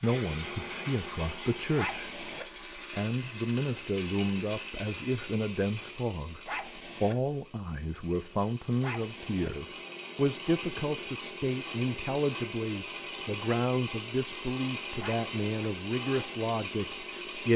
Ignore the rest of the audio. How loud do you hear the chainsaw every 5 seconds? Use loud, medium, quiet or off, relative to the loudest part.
loud, medium, loud, loud.